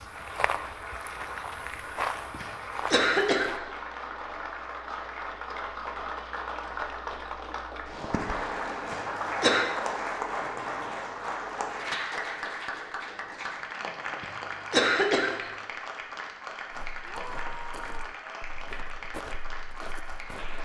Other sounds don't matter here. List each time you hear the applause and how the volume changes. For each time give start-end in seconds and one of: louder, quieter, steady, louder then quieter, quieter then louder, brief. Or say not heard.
0.0-20.5 louder then quieter.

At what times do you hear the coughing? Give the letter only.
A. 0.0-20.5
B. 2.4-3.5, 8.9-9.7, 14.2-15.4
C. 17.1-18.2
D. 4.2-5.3
B.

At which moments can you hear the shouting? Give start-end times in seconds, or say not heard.
17.1-18.2.